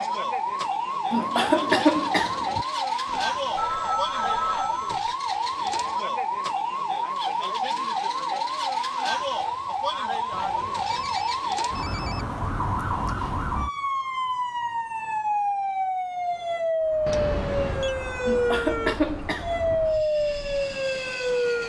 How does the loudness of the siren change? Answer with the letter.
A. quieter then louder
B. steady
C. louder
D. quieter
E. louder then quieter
B.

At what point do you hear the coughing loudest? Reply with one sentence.
The volume of the coughing peaks at 2 seconds.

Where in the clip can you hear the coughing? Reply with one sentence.
You can hear the coughing from 1.1 to 2.6 s and from 18.2 to 19.8 s.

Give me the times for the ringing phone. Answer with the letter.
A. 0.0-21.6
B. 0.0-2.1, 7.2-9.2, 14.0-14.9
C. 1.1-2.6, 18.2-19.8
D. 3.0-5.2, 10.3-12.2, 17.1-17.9
D.